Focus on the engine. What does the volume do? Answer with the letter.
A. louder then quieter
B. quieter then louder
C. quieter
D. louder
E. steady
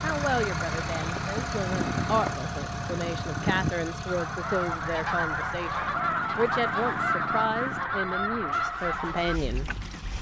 C.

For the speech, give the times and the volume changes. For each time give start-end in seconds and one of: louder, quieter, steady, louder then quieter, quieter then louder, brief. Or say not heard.
0.0-9.7 steady.